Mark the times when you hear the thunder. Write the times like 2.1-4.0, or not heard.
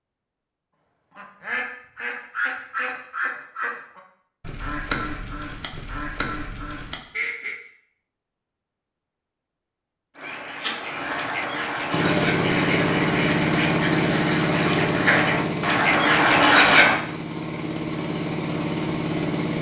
not heard.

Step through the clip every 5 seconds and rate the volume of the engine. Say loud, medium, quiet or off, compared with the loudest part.
off, off, loud, medium.